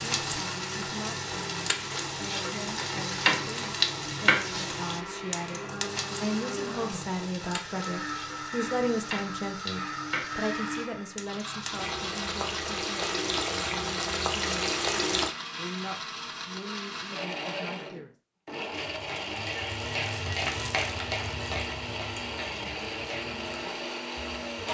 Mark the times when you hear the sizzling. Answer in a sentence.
You can hear the sizzling from 0.0 to 15.3 s and from 18.8 to 24.6 s.